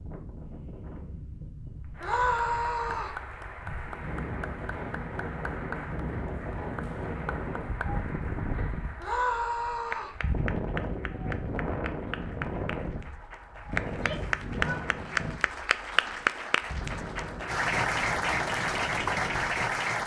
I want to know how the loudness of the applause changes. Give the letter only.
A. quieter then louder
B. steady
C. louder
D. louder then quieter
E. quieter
C.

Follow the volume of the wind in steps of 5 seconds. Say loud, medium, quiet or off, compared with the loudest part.
medium, loud, loud, medium.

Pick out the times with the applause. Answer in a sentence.
You can hear the applause from 1.9 to 20.0 s.